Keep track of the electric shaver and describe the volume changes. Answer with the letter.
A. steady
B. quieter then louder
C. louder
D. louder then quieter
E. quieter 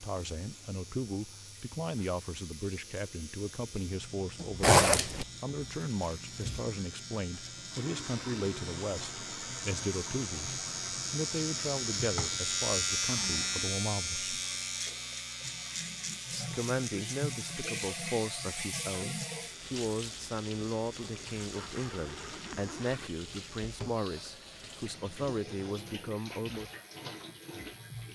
D.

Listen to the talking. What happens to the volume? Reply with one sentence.
The volume of the talking stays about the same.